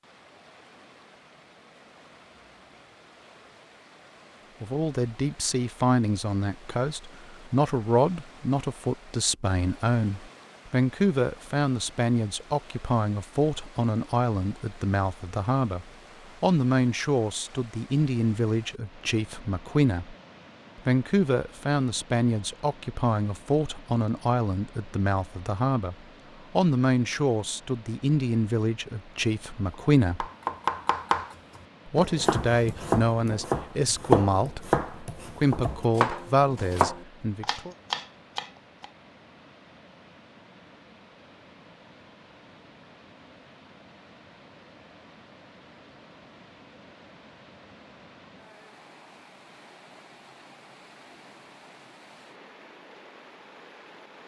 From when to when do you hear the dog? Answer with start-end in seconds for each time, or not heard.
not heard.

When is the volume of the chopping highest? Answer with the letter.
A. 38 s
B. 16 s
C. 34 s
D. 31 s
C.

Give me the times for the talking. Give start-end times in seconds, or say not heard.
4.6-20.1, 20.8-25.9, 26.6-30.2, 31.9-37.8.